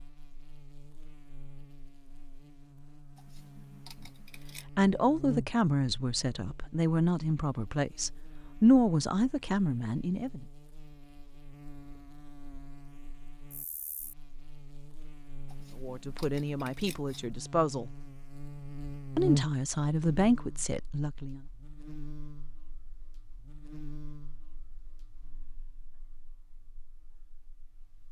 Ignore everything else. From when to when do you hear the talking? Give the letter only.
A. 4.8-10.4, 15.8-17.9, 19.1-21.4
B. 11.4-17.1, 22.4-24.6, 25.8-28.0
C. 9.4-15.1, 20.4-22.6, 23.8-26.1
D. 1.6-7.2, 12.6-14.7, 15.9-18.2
A.